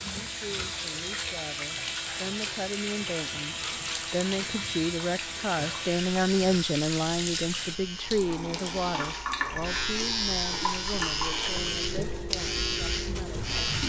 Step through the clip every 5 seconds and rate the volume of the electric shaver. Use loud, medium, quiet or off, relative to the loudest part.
medium, medium, loud.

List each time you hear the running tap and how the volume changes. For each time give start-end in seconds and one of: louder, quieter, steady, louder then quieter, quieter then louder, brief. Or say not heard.
0.0-13.8 steady.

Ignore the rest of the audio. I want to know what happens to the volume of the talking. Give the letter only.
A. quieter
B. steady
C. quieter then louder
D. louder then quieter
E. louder
D.